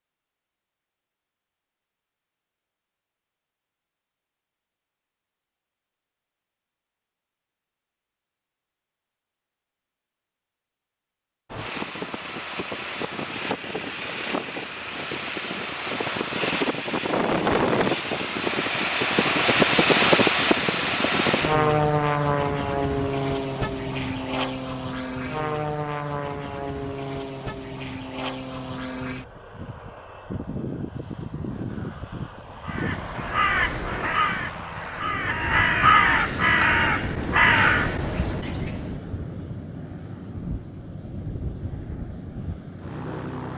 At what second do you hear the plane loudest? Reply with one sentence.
The loudest moment of the plane is at 20 seconds.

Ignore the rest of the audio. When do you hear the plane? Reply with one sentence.
You can hear the plane from 11.5 to 43.5 s.